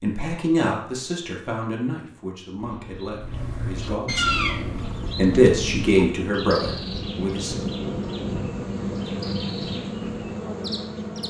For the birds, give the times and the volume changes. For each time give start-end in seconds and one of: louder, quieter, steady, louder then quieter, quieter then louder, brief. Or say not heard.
2.5-11.2 quieter.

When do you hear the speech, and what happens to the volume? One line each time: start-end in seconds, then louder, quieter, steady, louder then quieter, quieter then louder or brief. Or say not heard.
0.0-4.4 quieter
5.2-7.6 brief.